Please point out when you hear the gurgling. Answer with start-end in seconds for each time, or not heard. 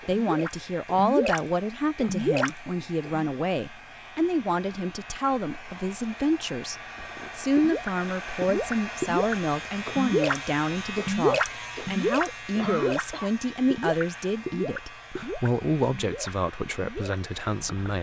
0.0-3.3, 7.0-13.1, 13.7-17.9.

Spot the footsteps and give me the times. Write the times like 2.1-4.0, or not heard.
not heard.